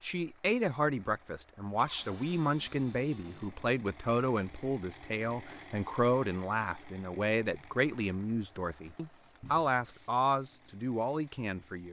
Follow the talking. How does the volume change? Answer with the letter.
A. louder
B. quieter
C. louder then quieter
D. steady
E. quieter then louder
D.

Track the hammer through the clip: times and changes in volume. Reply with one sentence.
You can't hear the hammer here.